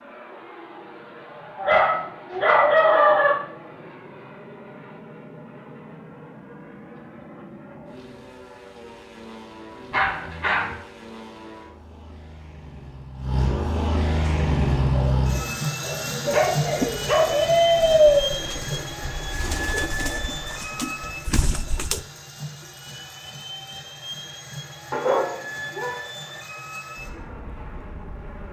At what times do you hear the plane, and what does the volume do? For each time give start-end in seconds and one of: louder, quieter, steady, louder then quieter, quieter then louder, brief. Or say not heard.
0.0-28.4 louder then quieter.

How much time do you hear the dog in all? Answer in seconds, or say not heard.
6 s.